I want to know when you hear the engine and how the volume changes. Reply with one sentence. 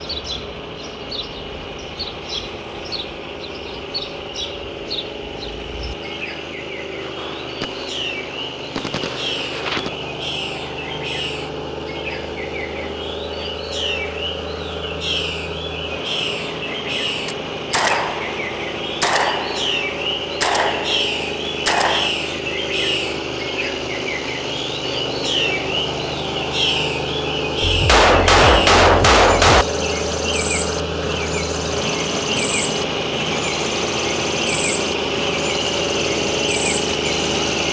The engine can be heard from 0.0 to 37.6 s, getting louder.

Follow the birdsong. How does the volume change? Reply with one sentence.
The volume of the birdsong goes up.